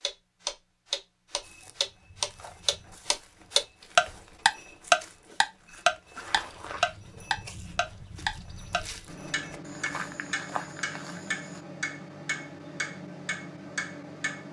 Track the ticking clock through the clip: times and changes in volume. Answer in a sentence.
The ticking clock can be heard from 0.0 to 14.4 s, getting louder then quieter.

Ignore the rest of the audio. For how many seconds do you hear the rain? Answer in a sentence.
The rain can't be heard in this clip.